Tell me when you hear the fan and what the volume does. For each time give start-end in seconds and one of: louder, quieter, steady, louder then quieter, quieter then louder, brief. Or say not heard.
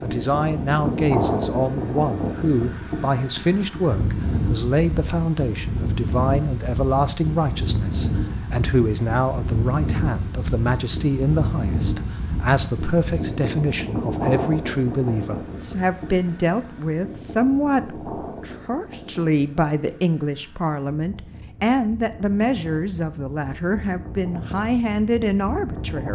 0.0-26.1 quieter.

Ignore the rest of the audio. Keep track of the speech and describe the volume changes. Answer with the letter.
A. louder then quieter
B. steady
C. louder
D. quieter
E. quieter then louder
B.